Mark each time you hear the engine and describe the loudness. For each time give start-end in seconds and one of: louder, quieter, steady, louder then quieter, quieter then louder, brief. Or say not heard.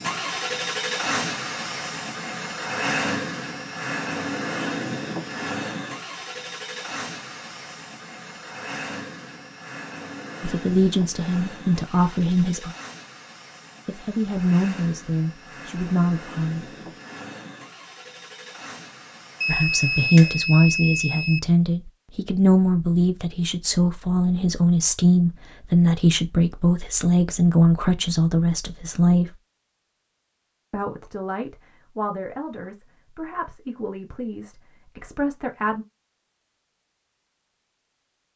0.0-20.1 quieter.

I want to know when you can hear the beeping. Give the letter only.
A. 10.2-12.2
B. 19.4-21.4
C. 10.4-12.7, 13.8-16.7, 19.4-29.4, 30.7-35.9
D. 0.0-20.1
B.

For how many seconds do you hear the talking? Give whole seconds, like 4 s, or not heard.
20 s.